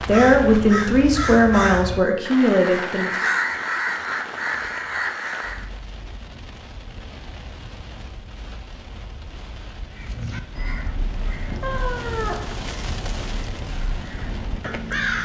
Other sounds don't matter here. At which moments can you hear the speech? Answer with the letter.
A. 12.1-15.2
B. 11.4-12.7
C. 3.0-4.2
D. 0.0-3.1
D.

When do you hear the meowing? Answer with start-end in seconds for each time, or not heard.
11.4-12.7.